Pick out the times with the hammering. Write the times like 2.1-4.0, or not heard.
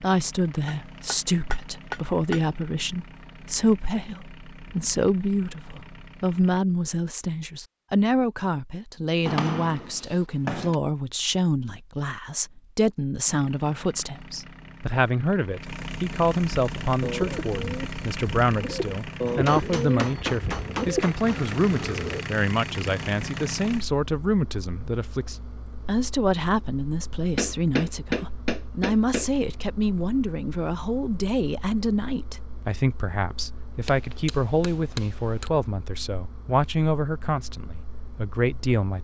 0.7-2.4, 9.2-10.8, 19.2-21.4, 27.4-29.3, 33.9-35.5.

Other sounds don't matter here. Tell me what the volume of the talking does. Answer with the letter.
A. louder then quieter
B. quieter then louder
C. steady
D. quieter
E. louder
C.